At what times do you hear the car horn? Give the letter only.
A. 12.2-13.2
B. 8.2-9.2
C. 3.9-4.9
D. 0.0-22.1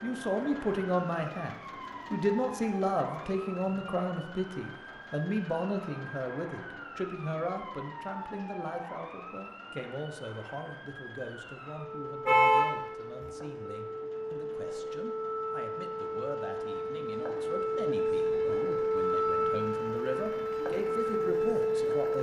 A.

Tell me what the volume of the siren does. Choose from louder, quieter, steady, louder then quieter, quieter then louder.
louder.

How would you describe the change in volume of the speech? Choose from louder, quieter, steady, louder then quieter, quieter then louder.
quieter then louder.